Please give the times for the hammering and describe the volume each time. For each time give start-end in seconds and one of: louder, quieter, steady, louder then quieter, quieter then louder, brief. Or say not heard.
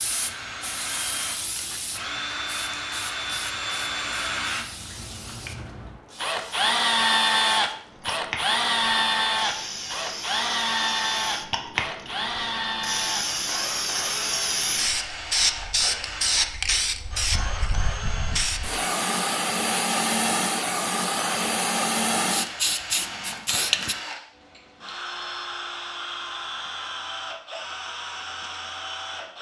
not heard.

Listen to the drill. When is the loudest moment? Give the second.
7 s.